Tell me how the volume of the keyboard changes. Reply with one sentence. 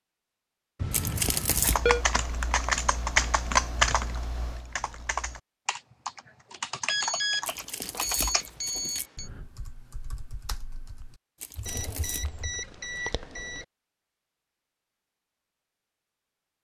The volume of the keyboard goes down.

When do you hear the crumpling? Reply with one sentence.
You can hear the crumpling from 0.9 to 1.8 s, from 7.5 to 9.1 s and from 11.4 to 12.2 s.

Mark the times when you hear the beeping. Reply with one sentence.
The beeping can be heard from 0.8 to 2.0 s, from 6.8 to 9.3 s and from 11.7 to 13.7 s.